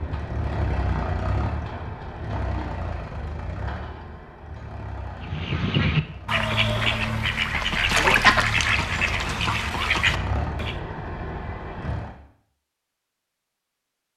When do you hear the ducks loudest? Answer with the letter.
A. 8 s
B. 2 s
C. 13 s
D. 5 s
A.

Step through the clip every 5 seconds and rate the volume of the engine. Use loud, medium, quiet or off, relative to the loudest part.
loud, medium, loud.